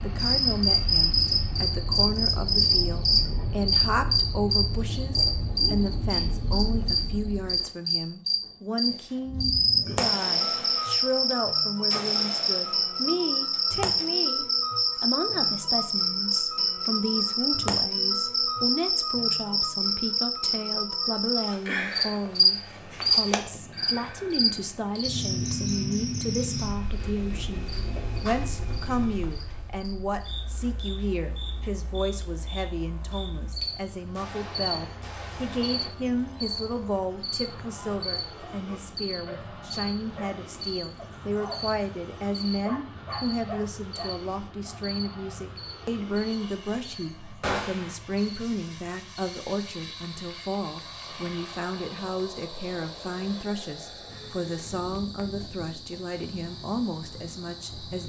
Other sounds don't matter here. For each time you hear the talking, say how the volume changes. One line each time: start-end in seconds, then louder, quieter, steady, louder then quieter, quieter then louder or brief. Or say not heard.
0.0-58.0 steady.